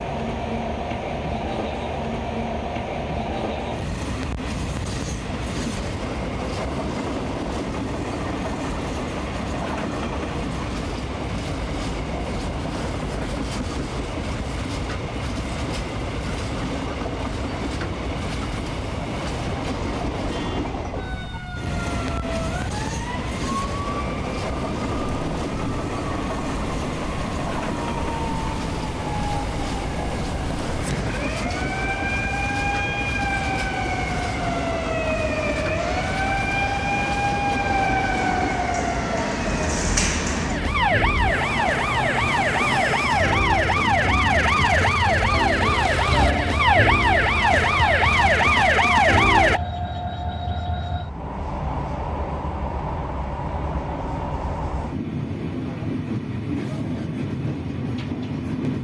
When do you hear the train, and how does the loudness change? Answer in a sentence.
You can hear the train from 0.0 to 58.7 s, at a steady volume.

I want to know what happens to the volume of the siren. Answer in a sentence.
The loudness of the siren goes up.